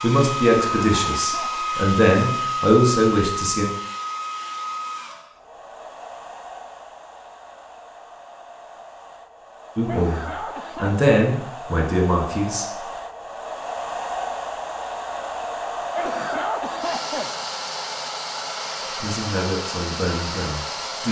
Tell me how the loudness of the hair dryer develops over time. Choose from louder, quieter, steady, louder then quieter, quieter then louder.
quieter then louder.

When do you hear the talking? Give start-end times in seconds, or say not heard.
0.0-3.6, 9.8-12.7, 19.0-21.0.